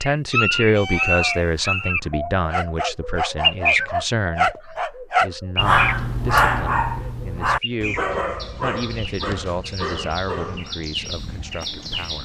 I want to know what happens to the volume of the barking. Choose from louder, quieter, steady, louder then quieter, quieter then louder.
louder then quieter.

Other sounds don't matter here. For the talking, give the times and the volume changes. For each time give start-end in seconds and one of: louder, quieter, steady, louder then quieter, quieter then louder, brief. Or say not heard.
0.0-12.2 quieter.